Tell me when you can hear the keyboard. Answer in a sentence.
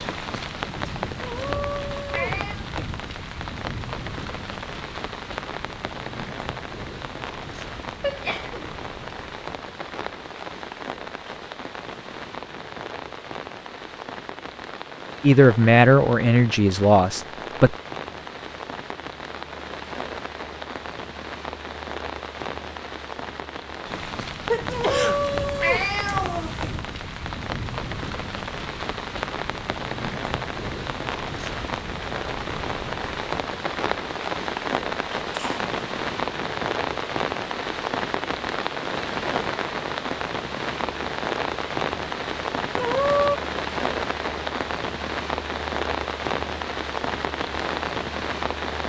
You can't hear the keyboard here.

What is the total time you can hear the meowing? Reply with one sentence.
The meowing can be heard for 4 seconds in total.